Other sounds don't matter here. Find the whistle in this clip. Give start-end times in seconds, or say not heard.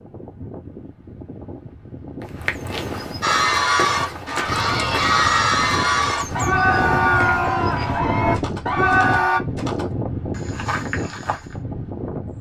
not heard.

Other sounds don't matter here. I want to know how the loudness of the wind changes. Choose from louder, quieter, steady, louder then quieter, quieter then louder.
louder.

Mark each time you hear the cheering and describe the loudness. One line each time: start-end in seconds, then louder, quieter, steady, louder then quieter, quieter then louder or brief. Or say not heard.
3.2-9.4 steady.